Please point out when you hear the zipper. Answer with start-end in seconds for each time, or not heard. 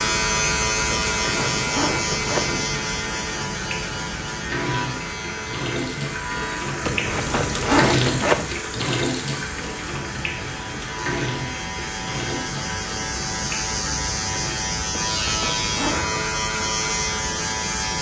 0.9-2.6, 6.8-8.5, 14.9-16.4.